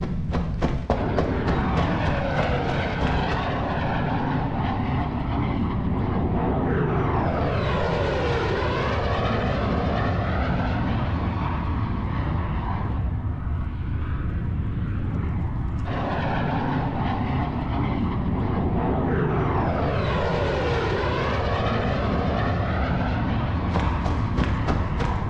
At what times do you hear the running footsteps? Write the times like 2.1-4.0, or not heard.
0.0-3.4, 23.6-25.2.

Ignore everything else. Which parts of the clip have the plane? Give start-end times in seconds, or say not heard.
0.0-25.2.